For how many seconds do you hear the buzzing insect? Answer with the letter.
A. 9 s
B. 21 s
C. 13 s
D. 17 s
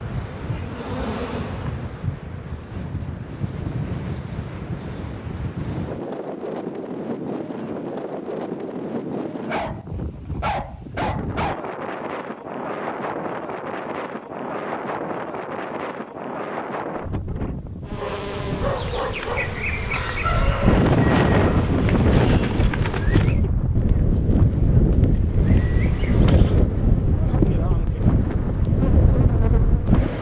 C.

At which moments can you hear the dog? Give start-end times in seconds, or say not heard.
9.4-11.6, 17.9-19.6.